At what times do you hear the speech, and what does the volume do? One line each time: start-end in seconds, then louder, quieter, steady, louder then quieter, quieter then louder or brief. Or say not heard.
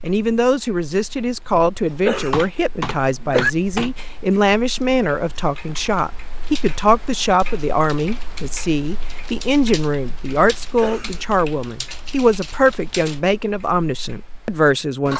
0.0-15.1 steady.